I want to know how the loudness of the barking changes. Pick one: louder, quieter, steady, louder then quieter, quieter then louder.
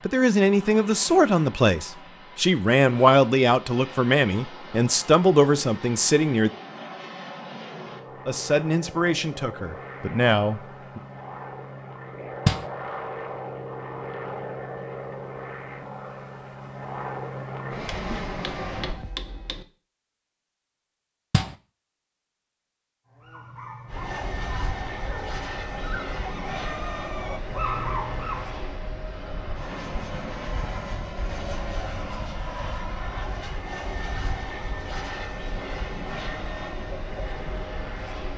louder.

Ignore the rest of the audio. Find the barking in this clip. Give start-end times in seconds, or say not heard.
23.1-28.6.